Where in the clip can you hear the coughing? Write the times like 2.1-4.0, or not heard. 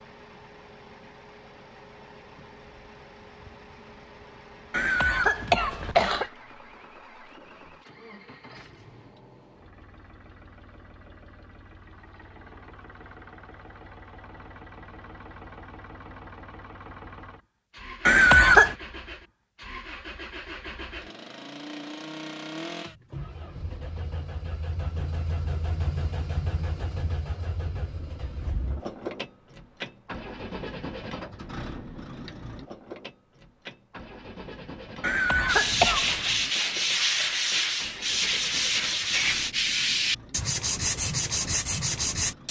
4.7-6.3, 18.1-18.8, 35.0-36.2.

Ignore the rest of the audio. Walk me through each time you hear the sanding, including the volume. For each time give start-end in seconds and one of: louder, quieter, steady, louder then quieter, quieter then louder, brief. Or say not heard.
35.5-42.4 steady.